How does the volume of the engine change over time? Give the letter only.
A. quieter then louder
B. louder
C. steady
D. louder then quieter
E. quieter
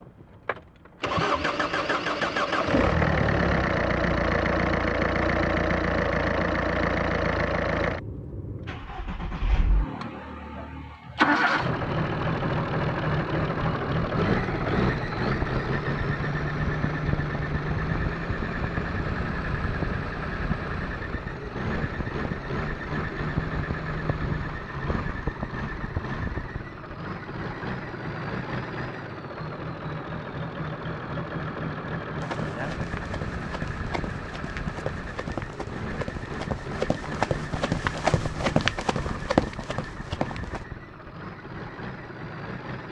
E.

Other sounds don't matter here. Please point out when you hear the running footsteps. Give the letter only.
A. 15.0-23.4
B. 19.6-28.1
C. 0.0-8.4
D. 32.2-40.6
D.